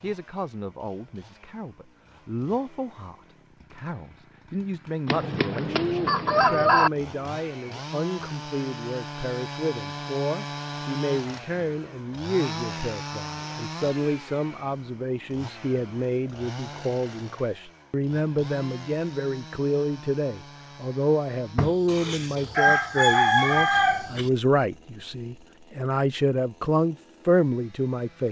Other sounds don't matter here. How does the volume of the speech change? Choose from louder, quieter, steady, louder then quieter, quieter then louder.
louder.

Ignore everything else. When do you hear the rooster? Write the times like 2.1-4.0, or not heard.
5.0-6.9, 21.6-24.3.